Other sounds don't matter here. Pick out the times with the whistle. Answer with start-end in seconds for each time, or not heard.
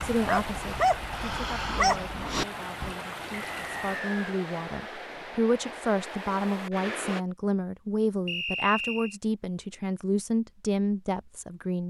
3.5-4.3, 8.2-9.2.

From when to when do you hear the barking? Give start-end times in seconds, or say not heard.
0.0-3.0.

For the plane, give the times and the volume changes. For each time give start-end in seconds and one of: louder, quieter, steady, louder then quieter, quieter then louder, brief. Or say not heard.
not heard.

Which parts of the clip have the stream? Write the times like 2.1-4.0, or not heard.
0.0-7.2.